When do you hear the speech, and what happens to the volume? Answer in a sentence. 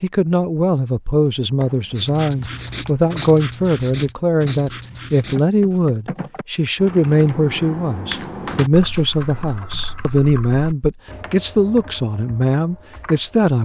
The speech can be heard from 0.0 to 13.5 s, at a steady volume.